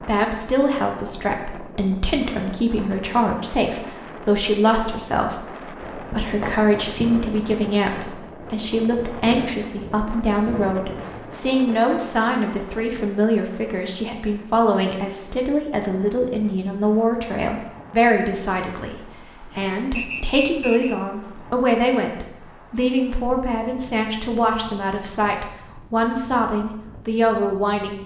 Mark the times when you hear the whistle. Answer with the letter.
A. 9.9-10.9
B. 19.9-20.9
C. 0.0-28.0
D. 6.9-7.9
B.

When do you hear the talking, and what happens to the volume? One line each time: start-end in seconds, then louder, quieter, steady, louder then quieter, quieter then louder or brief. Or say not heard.
0.0-28.0 steady.